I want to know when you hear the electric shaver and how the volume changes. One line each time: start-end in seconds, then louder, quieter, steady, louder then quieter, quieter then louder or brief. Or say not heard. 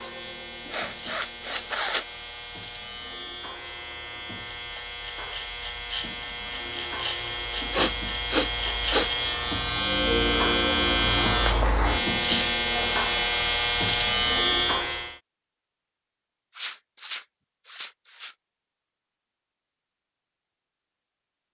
0.0-15.2 louder.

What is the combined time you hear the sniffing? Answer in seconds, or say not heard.
5 s.